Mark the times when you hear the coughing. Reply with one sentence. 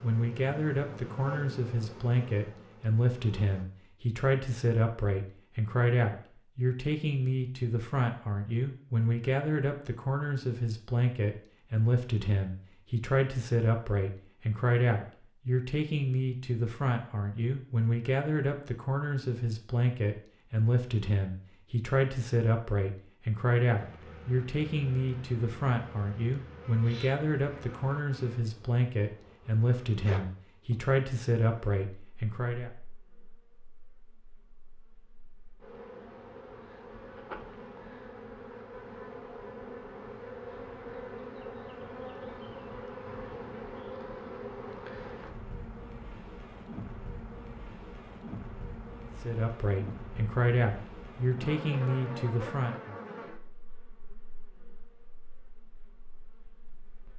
You can't hear the coughing here.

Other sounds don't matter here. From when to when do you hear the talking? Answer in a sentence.
The talking can be heard from 0.0 to 32.7 s and from 49.1 to 53.0 s.